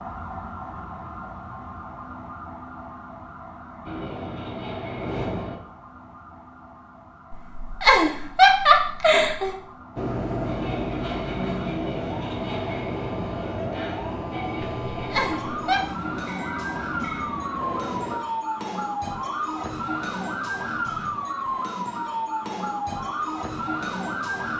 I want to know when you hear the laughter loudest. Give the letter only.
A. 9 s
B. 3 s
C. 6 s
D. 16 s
A.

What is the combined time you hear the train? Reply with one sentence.
You can hear the train for 10 seconds altogether.